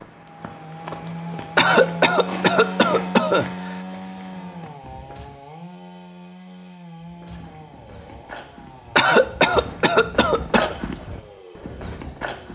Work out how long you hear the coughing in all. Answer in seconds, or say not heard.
4 s.